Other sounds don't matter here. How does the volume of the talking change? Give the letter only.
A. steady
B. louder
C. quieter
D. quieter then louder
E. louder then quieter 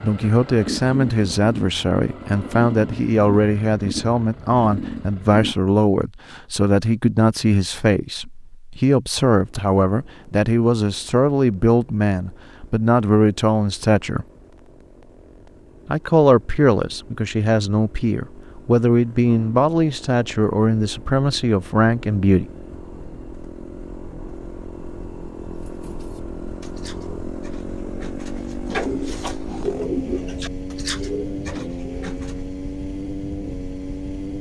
A.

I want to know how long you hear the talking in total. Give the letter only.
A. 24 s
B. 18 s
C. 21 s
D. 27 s
C.